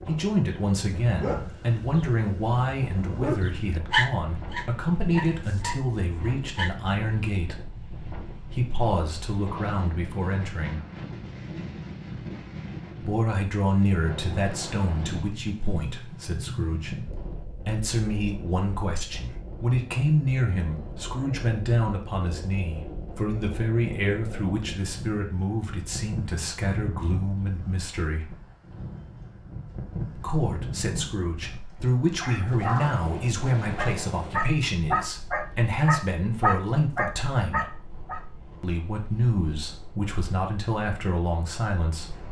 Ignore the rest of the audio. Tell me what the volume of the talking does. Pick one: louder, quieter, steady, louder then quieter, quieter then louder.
steady.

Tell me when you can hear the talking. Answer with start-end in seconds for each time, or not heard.
0.0-10.8, 13.0-28.3, 30.1-37.8, 38.6-42.2.